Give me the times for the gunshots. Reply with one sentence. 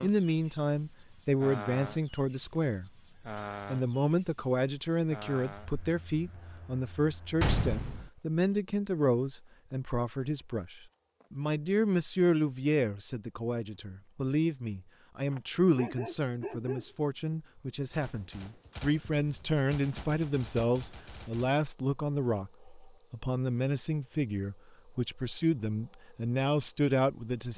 You can hear the gunshots from 7.4 to 8.1 s and from 17.9 to 21.6 s.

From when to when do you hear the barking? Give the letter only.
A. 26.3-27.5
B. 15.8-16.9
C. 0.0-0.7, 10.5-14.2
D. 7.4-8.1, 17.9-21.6
B.